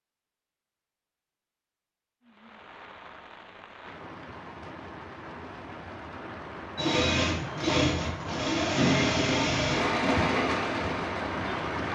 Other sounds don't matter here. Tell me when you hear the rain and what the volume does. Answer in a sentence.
You can hear the rain from 2.2 to 11.9 s, getting louder.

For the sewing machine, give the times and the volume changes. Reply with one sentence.
The sewing machine can be heard from 6.8 to 11.9 s, getting quieter.